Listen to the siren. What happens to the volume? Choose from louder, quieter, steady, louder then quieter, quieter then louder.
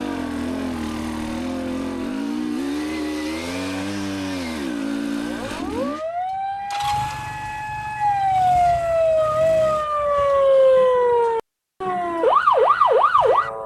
louder.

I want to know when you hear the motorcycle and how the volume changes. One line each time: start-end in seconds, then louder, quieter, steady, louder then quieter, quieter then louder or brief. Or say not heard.
0.0-9.9 quieter.